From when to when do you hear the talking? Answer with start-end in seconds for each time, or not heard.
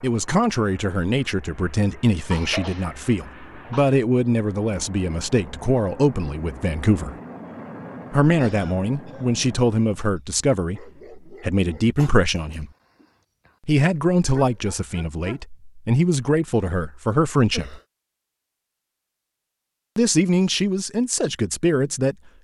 0.0-7.2, 8.1-12.7, 13.7-17.8, 19.9-22.1.